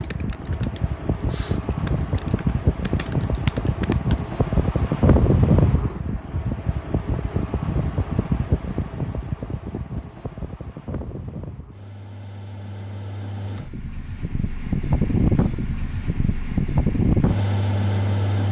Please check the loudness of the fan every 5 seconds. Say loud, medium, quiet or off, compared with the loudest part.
loud, loud, medium, loud.